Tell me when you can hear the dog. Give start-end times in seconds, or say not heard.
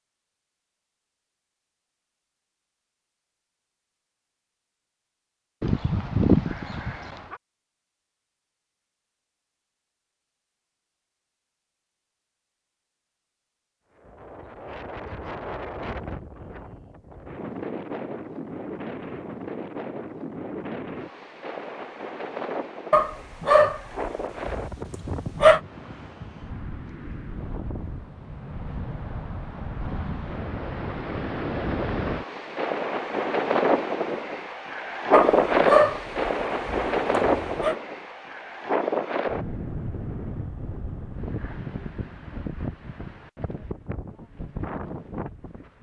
5.6-7.3, 22.9-25.6, 35.1-37.8.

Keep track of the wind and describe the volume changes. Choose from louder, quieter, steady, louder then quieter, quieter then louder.
louder then quieter.